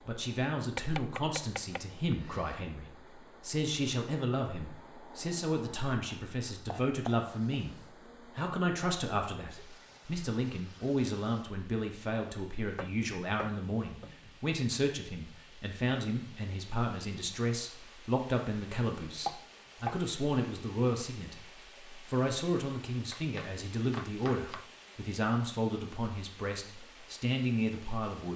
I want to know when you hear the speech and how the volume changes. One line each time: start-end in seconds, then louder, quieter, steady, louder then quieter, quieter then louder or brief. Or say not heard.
0.0-28.3 steady.